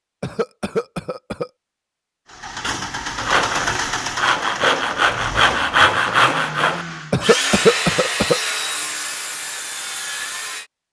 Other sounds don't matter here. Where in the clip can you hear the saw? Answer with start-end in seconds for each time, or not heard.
3.1-10.7.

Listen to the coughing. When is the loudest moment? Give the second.
8 s.